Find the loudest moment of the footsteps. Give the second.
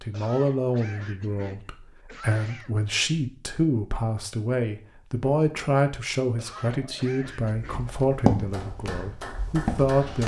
8 s.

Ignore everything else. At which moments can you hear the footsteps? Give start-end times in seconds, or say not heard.
7.4-10.2.